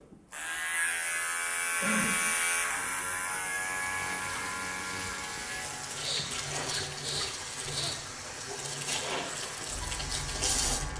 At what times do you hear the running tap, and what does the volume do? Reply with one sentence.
The running tap can be heard from 3.6 to 10.9 s, getting louder.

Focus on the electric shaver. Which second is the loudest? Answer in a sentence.
The volume of the electric shaver peaks at 2 seconds.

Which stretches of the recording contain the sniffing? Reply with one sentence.
The sniffing can be heard from 1.8 to 2.7 s and from 6.0 to 8.0 s.